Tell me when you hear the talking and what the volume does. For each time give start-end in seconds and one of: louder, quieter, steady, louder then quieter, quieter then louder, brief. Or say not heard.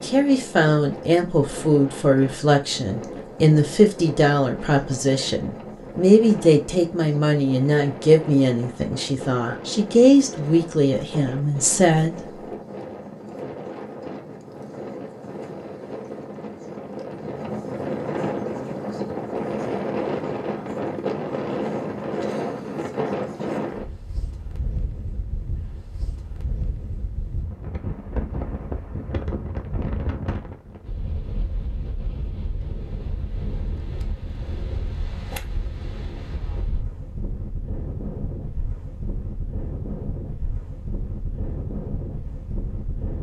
0.0-12.2 steady.